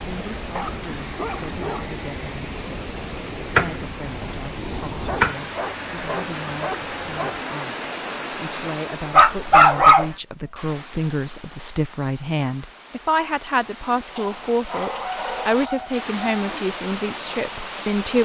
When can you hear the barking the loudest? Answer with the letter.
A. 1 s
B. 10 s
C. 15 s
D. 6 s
B.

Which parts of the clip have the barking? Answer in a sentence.
The barking can be heard from 0.5 to 1.9 s, from 5.0 to 7.4 s, from 9.1 to 10.1 s and from 14.2 to 16.6 s.